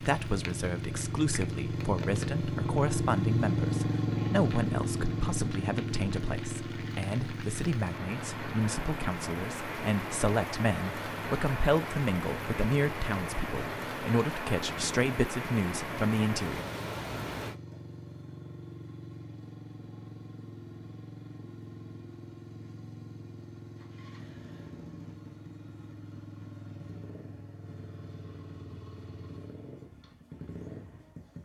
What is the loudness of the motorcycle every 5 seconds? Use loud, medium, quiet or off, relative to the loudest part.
loud, medium, quiet, quiet, quiet, quiet, quiet.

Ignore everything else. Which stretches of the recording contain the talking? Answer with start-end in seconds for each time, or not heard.
0.0-16.6.